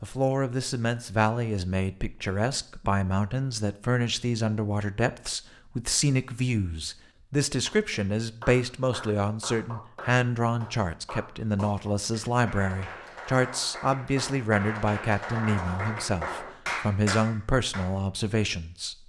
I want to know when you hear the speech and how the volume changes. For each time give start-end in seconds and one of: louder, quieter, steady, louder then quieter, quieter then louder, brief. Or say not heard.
0.0-18.9 steady.